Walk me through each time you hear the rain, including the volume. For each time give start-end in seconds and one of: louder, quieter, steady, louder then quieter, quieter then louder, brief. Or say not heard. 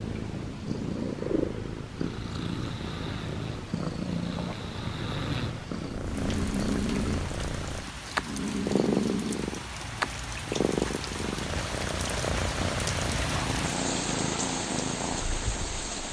6.0-16.0 louder.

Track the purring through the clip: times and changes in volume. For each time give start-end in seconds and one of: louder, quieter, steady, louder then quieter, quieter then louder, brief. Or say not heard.
0.0-16.0 steady.